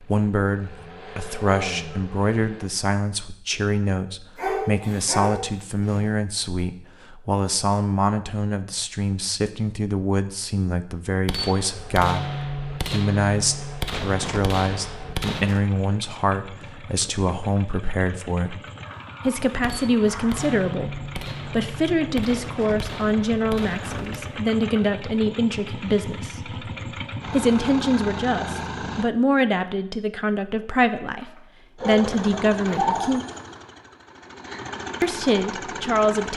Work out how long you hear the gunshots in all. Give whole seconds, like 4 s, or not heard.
9 s.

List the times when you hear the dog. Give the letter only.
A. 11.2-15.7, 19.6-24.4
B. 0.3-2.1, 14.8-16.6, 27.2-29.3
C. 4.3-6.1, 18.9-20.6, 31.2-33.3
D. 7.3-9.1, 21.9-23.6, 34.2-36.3
C.